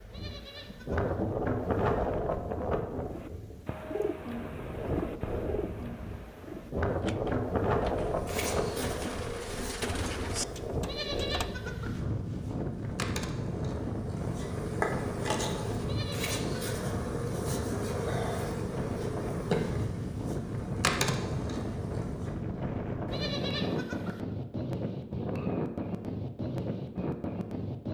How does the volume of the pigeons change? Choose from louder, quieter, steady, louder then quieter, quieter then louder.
quieter then louder.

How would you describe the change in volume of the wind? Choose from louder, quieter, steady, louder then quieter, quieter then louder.
steady.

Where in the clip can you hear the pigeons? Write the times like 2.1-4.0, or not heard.
3.0-11.6.